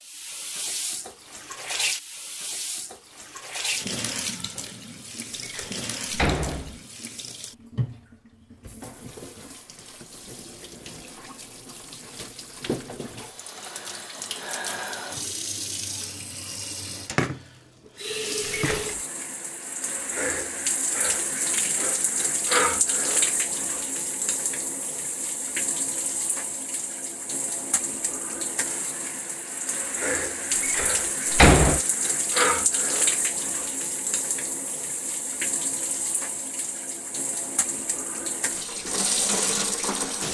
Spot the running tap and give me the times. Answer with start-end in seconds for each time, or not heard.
0.0-40.2.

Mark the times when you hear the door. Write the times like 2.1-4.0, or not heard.
5.4-6.8, 18.4-19.0, 30.6-31.8.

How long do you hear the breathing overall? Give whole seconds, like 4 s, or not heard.
not heard.